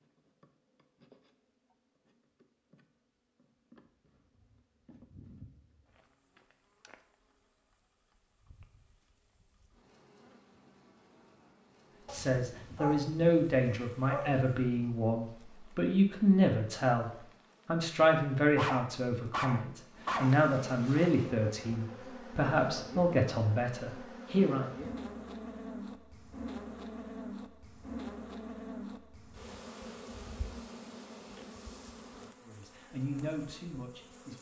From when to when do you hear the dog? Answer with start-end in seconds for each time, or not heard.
12.1-14.4, 18.6-20.4.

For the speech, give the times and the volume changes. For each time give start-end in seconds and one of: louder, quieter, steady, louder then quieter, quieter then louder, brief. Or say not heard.
12.1-24.6 steady
32.4-34.3 brief.